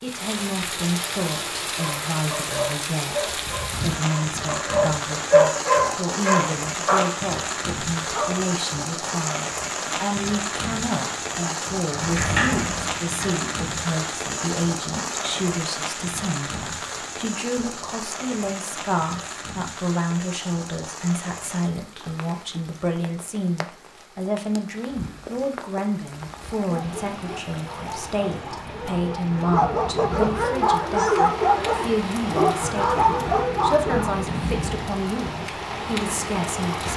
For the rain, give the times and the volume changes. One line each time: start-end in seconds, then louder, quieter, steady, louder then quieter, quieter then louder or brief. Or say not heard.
0.0-36.9 quieter then louder.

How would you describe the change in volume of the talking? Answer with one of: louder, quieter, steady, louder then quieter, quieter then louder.
steady.